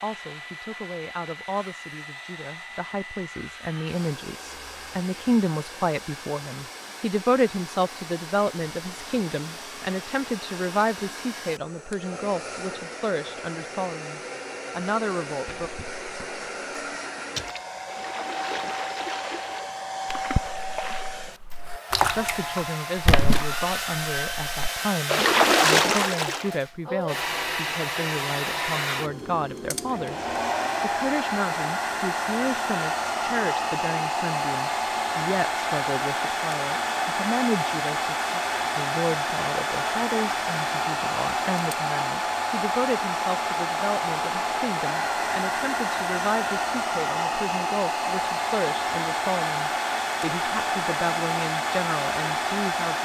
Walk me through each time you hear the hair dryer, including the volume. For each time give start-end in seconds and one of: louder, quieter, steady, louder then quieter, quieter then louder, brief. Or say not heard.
0.0-53.0 louder.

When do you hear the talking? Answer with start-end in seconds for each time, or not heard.
0.0-15.7, 22.1-53.0.